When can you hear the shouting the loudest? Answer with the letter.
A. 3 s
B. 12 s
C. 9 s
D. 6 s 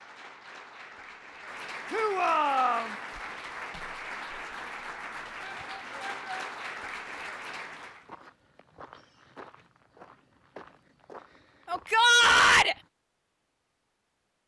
B.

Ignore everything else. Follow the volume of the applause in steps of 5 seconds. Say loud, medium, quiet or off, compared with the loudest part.
loud, loud, off.